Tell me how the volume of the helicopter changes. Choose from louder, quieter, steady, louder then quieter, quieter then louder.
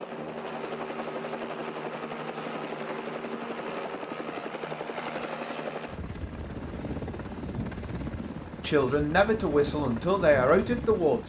steady.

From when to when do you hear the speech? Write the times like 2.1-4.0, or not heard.
8.6-11.2.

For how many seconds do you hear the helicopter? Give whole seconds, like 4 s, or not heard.
11 s.